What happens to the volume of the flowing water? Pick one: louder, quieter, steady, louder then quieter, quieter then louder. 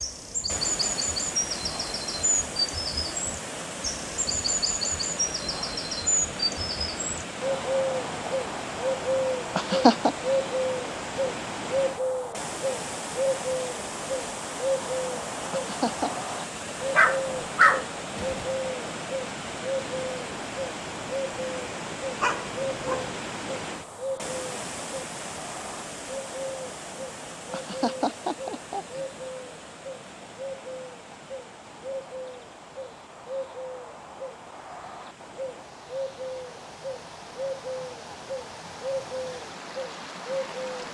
quieter.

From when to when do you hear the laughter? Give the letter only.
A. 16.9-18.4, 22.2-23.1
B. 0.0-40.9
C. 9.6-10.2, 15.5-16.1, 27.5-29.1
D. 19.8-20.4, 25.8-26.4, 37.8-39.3
C.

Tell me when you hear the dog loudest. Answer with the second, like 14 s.
18 s.